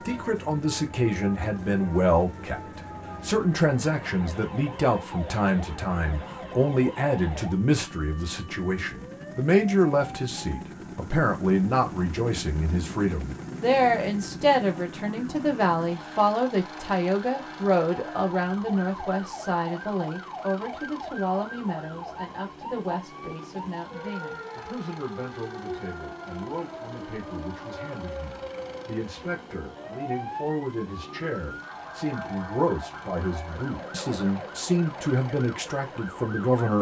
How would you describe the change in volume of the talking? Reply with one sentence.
The loudness of the talking goes down, then up.